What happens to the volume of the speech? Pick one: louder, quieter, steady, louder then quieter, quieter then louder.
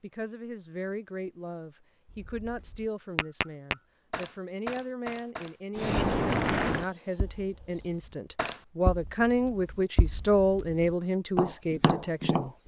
louder.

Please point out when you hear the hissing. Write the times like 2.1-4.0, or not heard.
5.8-8.1.